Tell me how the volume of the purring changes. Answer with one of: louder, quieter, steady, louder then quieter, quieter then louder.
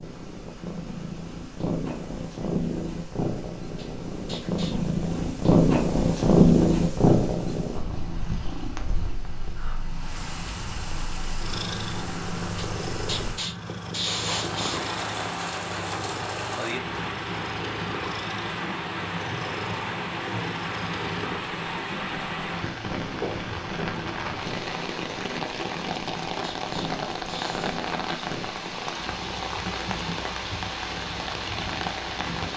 quieter.